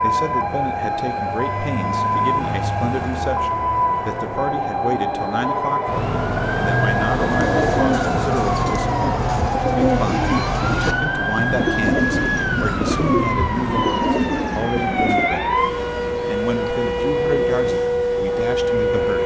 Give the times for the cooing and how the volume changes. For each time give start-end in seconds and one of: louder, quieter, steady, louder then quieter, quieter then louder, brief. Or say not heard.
7.2-15.3 steady.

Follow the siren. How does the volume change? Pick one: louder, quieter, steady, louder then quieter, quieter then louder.
steady.